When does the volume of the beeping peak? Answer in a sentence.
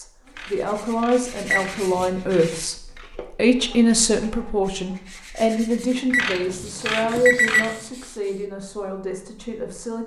The loudest moment of the beeping is at 7 seconds.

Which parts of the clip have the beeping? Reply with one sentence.
You can hear the beeping from 1.5 to 2.5 s and from 6.1 to 7.8 s.